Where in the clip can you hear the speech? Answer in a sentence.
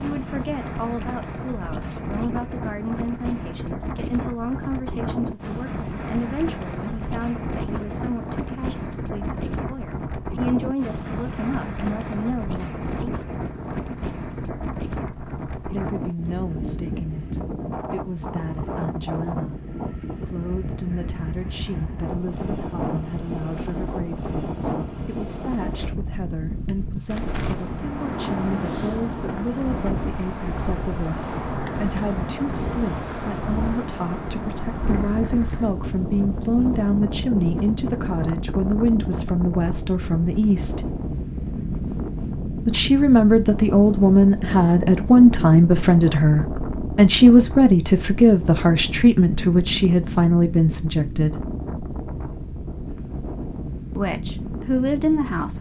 The speech can be heard from 0.0 to 13.1 s, from 15.7 to 40.9 s, from 42.6 to 51.5 s and from 54.0 to 55.5 s.